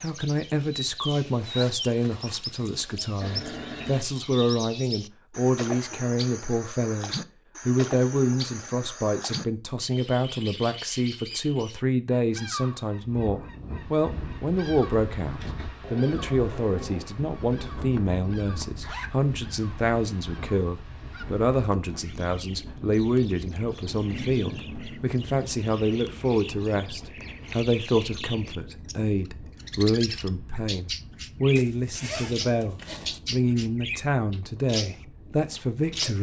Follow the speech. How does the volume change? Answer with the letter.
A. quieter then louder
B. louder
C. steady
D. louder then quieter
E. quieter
C.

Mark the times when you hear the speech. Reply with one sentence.
The speech can be heard from 0.0 to 36.1 s.